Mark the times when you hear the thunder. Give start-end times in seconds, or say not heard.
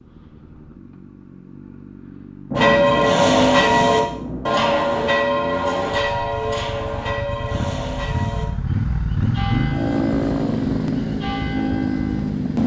2.5-4.5.